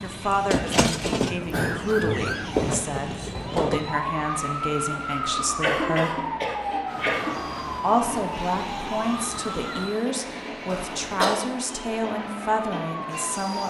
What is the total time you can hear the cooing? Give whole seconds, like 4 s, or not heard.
not heard.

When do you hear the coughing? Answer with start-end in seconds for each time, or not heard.
1.5-2.1, 5.1-7.3, 10.7-11.4.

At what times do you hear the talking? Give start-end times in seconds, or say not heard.
0.0-6.2, 7.3-13.6.